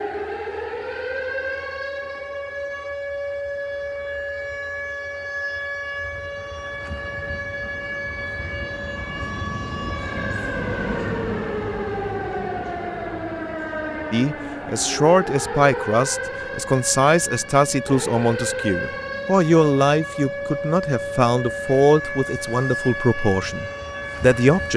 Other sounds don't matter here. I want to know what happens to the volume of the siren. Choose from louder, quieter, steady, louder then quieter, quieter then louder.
steady.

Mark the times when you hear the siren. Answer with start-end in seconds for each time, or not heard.
0.0-24.7.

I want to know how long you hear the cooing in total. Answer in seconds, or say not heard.
not heard.